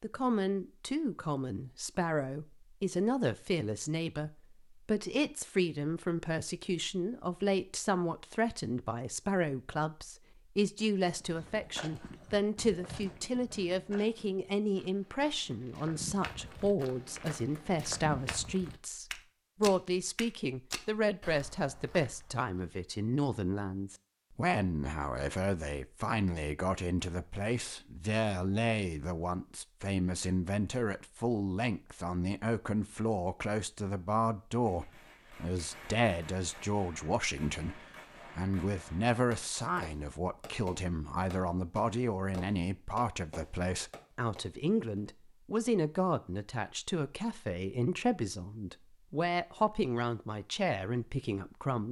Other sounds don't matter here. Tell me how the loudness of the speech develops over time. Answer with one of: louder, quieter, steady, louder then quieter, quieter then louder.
steady.